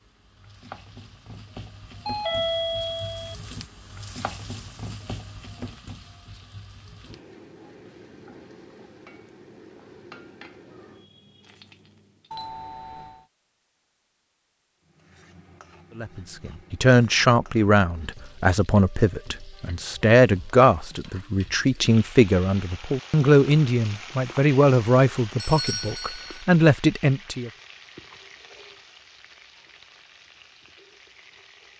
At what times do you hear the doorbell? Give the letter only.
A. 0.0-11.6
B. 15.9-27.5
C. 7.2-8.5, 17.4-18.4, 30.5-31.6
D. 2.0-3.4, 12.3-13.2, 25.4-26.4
D.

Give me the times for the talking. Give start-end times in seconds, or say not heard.
15.9-27.5.